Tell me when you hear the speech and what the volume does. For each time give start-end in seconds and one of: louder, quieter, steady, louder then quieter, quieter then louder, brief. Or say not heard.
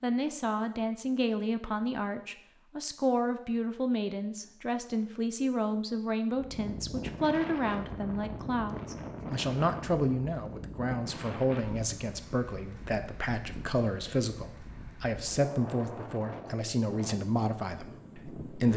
0.0-18.7 steady.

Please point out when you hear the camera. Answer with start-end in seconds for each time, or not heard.
not heard.